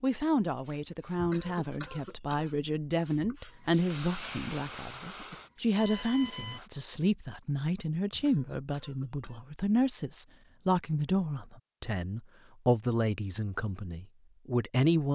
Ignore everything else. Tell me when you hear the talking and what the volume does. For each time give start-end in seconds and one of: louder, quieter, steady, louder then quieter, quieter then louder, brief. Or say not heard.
0.0-15.1 steady.